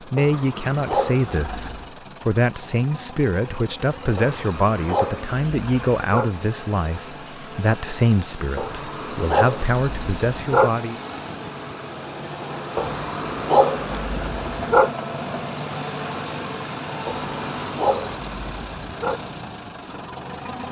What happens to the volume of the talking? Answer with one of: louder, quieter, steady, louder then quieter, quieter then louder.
steady.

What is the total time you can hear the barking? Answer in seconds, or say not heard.
10 s.